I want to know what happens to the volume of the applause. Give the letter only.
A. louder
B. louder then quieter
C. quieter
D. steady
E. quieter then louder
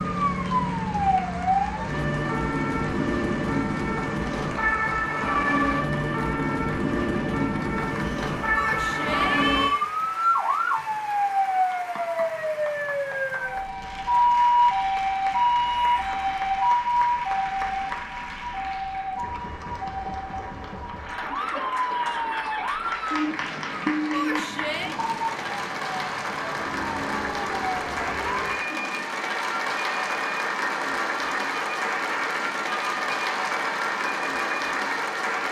A.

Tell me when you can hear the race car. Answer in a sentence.
The race car can't be heard in this clip.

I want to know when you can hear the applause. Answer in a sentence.
You can hear the applause from 0.0 to 35.4 s.